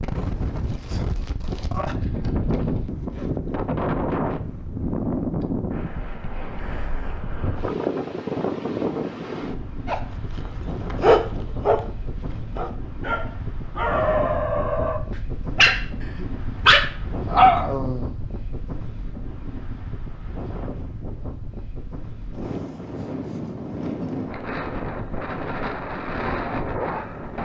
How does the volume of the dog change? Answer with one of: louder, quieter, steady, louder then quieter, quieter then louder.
quieter then louder.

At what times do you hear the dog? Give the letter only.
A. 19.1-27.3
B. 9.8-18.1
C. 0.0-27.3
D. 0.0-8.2
B.